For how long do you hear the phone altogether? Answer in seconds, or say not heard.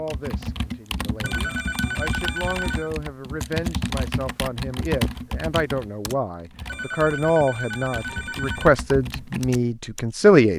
4 s.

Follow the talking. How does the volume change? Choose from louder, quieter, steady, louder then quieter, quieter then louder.
louder.